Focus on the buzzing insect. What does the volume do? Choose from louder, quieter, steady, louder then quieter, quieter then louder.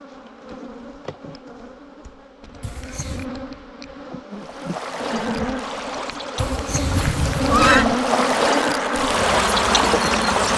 louder.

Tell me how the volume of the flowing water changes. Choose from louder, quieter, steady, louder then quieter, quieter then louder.
louder.